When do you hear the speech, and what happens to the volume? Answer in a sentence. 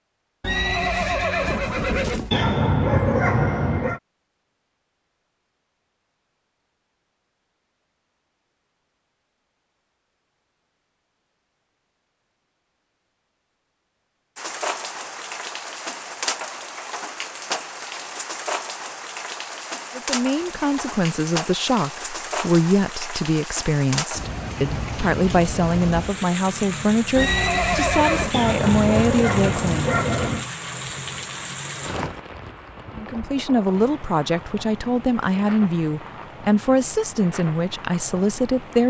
You can hear the speech from 19.9 to 30.0 s, at a steady volume; and from 33.0 to 38.8 s, at a steady volume.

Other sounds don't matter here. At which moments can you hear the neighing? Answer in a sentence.
The neighing can be heard from 0.4 to 2.4 s and from 27.1 to 28.4 s.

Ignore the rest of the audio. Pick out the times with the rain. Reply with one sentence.
The rain can be heard from 14.3 to 38.8 s.